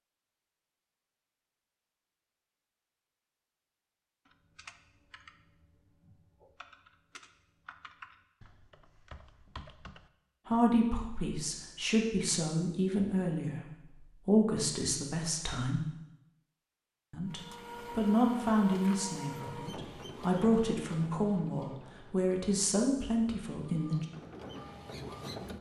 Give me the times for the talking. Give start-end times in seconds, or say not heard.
10.4-15.8, 17.1-24.1.